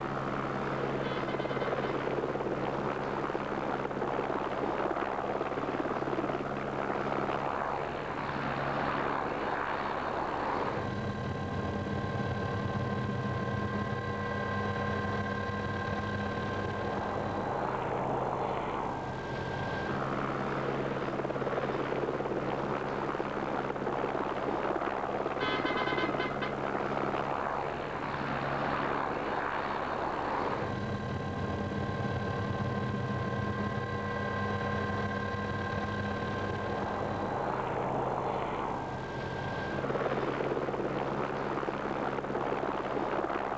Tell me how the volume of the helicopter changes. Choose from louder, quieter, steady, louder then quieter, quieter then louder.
steady.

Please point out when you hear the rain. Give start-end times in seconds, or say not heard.
not heard.